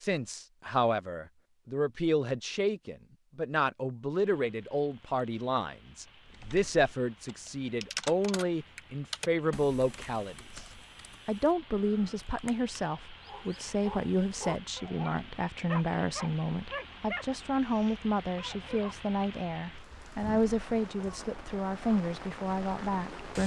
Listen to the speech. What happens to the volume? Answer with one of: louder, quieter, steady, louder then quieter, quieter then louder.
steady.